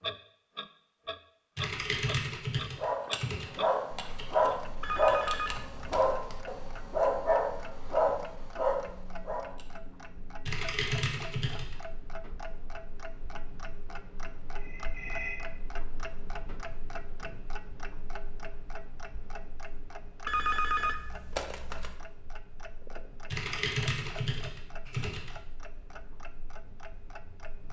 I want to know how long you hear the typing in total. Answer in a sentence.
The typing can be heard for 6 seconds in total.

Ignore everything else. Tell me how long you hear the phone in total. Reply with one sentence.
The phone can be heard for 4 seconds in total.